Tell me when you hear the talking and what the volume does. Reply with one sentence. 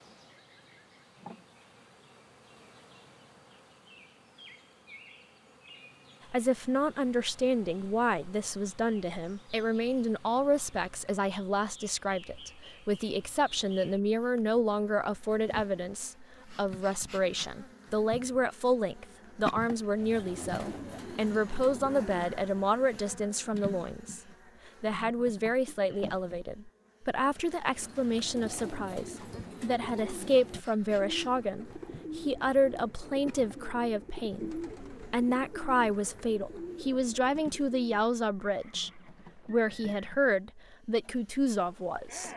You can hear the talking from 6.3 to 42.3 s, at a steady volume.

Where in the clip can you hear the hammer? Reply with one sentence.
You can't hear the hammer here.